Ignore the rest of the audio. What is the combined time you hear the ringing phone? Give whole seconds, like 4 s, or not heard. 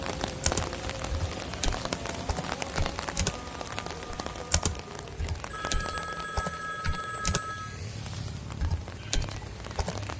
2 s.